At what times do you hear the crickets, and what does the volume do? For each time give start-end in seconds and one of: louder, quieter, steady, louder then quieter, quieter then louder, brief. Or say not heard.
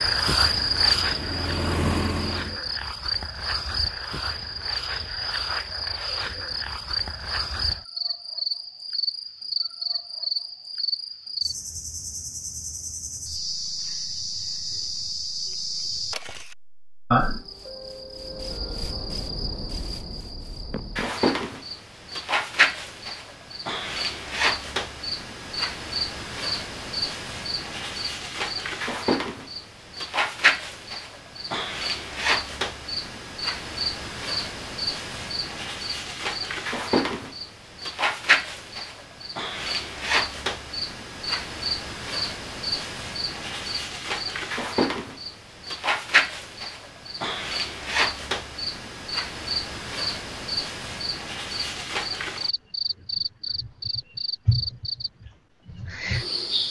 0.0-56.6 steady.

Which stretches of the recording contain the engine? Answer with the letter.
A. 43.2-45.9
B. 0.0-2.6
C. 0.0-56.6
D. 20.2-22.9
B.